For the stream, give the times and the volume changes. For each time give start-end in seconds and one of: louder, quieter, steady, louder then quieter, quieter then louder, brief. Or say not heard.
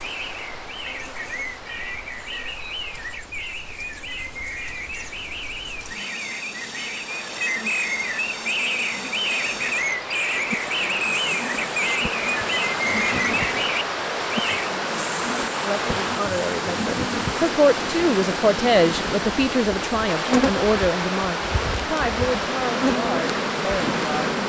0.0-24.4 louder.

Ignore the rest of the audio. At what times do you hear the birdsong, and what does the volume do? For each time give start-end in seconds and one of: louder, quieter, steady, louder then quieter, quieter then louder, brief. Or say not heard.
0.0-14.8 louder.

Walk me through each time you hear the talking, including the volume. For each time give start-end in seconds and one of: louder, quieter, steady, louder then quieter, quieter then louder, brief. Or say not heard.
15.6-24.4 louder then quieter.